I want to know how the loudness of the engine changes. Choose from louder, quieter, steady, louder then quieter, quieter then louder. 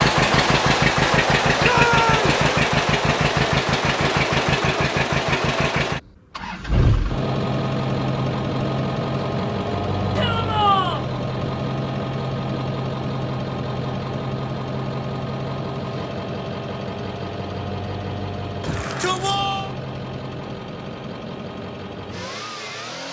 quieter.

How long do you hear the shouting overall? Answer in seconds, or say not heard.
3 s.